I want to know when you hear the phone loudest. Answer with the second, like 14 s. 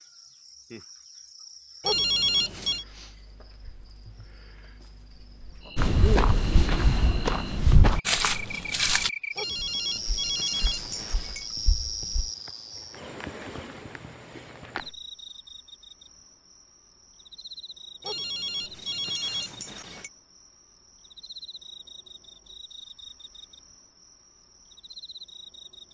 2 s.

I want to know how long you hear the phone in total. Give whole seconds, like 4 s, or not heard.
5 s.